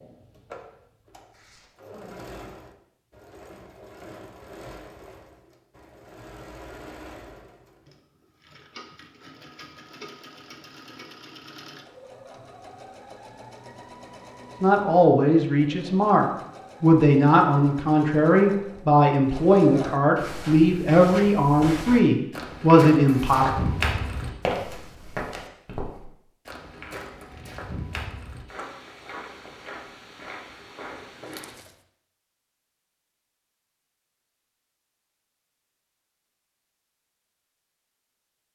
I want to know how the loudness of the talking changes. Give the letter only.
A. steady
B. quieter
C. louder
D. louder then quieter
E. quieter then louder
A.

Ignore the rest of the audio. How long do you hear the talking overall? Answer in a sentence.
The talking can be heard for 9 seconds in total.